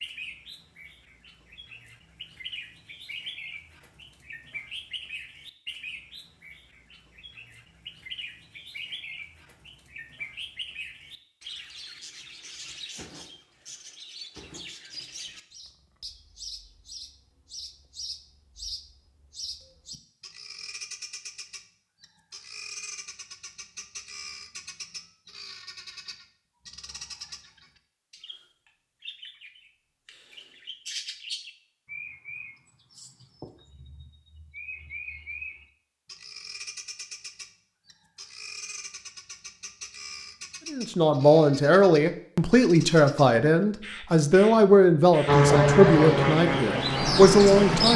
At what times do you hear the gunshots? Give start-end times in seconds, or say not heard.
not heard.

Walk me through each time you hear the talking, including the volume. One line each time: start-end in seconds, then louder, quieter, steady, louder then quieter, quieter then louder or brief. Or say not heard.
40.7-47.9 steady.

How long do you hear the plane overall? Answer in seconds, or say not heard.
3 s.